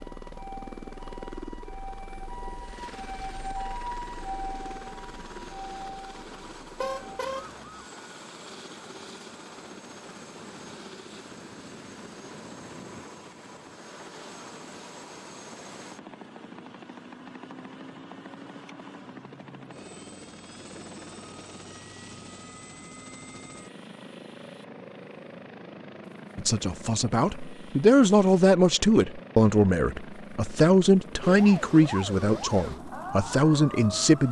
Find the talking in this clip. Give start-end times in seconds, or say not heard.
26.4-34.2.